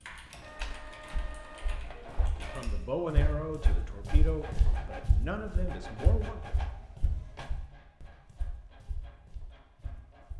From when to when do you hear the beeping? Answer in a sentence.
The beeping can't be heard in this clip.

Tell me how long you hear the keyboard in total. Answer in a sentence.
You can hear the keyboard for 3 seconds altogether.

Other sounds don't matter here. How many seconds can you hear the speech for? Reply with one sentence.
The speech can be heard for 4 seconds in total.